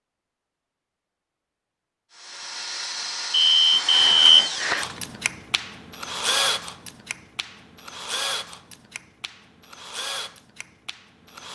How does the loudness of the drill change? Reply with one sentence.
The volume of the drill goes down.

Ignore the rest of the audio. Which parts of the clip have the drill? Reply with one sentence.
The drill can be heard from 2.1 to 11.5 s.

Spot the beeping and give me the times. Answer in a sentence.
The beeping can be heard from 3.3 to 5.0 s.